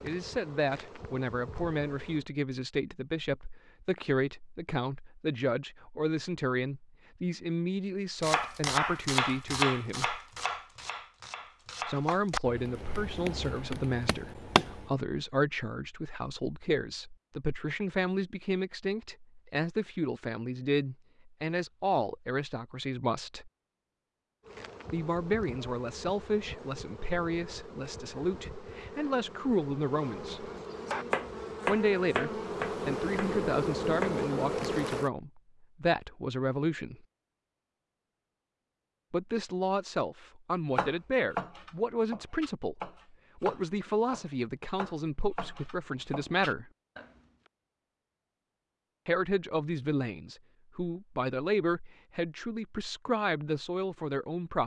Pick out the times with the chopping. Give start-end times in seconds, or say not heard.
8.2-14.9, 30.9-34.2, 40.8-47.1.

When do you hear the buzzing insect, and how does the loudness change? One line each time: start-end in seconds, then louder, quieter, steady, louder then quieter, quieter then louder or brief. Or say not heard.
0.0-2.2 brief
24.4-35.1 louder.